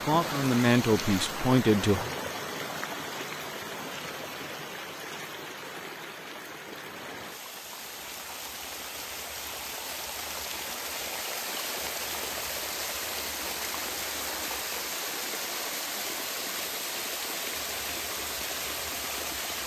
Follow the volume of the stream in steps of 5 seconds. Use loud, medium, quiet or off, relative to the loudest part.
loud, medium, loud, loud.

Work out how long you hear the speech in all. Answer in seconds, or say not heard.
2 s.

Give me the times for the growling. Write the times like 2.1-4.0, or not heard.
not heard.